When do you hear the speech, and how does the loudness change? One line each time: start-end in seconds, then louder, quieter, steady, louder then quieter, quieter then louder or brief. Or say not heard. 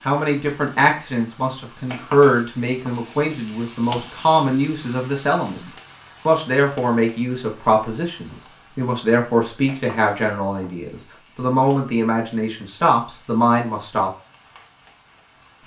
0.0-14.1 steady.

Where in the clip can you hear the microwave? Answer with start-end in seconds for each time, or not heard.
not heard.